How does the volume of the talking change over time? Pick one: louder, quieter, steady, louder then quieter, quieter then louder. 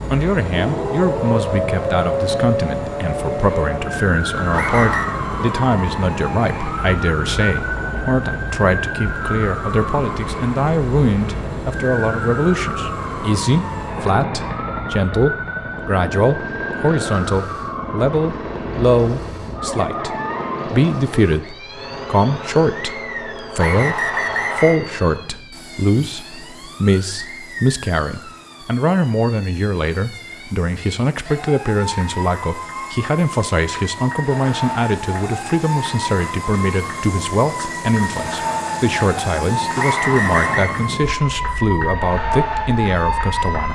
steady.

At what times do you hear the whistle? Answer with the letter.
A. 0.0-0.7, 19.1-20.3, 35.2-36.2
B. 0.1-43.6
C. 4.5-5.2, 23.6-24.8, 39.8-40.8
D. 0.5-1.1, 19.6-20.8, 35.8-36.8
C.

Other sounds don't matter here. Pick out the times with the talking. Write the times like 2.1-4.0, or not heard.
0.1-43.6.